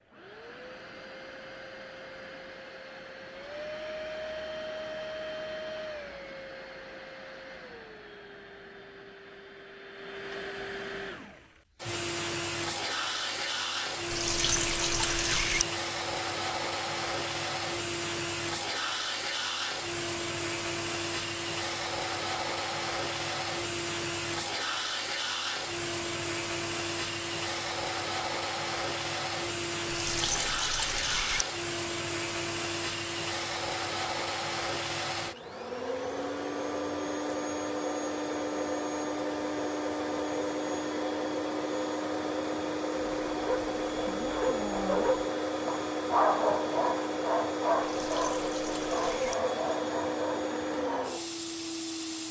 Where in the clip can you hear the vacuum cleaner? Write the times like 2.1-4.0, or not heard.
0.0-52.2.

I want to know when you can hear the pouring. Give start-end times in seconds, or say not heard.
14.1-15.7, 29.9-31.4, 47.8-49.4.